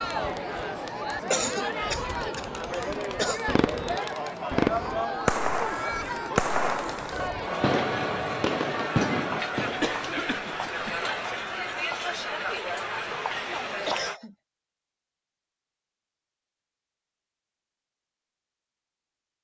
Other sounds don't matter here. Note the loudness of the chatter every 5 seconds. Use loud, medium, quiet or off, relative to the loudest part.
loud, loud, loud, off.